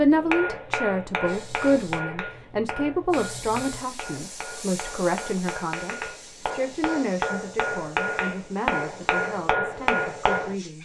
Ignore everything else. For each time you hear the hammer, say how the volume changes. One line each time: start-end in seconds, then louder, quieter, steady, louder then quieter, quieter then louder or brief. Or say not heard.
0.1-10.6 quieter then louder.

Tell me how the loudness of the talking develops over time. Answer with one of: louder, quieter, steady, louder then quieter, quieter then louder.
quieter.